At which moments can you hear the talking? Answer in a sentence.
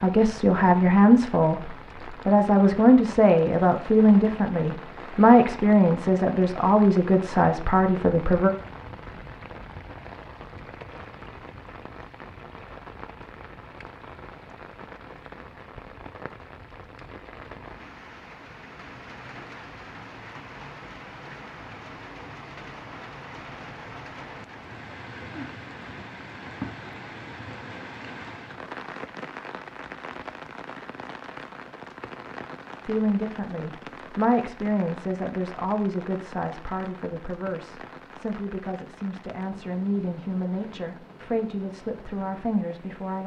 You can hear the talking from 0.0 to 8.5 s and from 32.9 to 43.2 s.